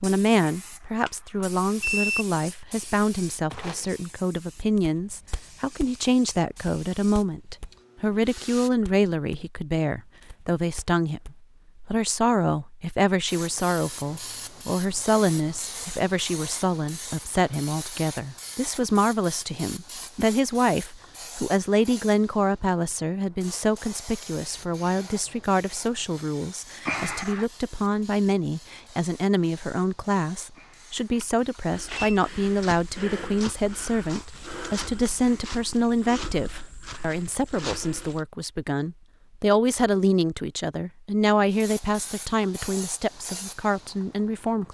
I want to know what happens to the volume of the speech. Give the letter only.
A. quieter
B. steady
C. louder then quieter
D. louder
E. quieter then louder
B.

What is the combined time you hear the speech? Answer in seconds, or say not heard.
45 s.